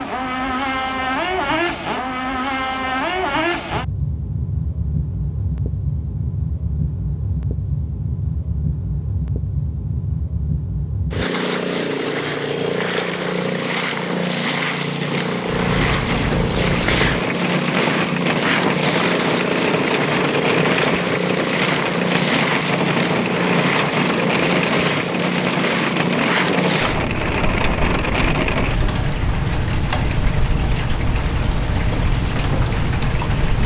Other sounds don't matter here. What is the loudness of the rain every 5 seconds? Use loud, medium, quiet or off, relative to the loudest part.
off, off, off, loud, loud, loud, loud.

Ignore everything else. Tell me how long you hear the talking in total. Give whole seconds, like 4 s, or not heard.
not heard.